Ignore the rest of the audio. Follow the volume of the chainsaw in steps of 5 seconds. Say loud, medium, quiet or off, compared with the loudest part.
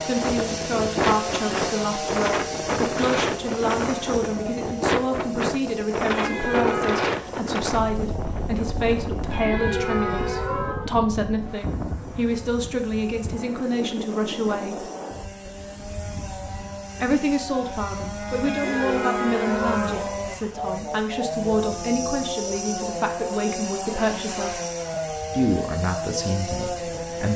loud, medium, quiet, loud, loud, loud.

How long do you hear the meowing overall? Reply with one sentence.
You can hear the meowing for 5 seconds altogether.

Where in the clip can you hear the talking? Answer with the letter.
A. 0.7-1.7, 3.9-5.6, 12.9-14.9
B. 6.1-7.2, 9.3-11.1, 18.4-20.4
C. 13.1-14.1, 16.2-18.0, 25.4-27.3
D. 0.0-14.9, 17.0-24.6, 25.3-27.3
D.